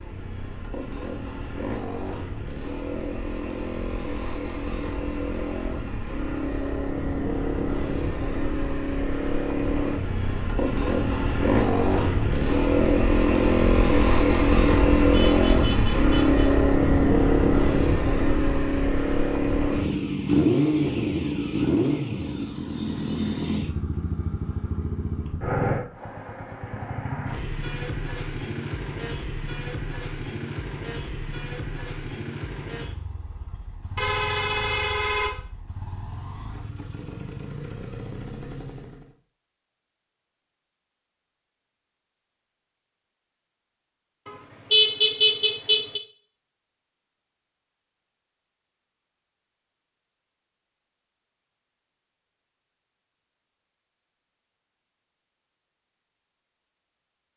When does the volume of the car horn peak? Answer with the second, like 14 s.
45 s.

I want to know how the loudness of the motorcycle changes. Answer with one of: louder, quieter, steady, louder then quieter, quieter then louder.
louder then quieter.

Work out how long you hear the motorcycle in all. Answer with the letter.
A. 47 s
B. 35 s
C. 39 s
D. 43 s
C.